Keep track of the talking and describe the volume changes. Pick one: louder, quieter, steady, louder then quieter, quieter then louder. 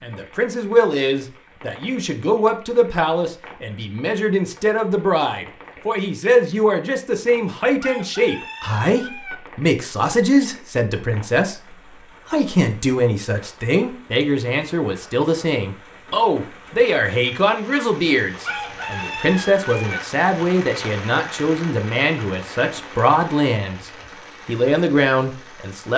steady.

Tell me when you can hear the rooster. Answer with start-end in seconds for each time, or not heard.
7.8-9.3, 18.4-20.0.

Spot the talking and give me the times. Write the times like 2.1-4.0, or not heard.
0.0-25.9.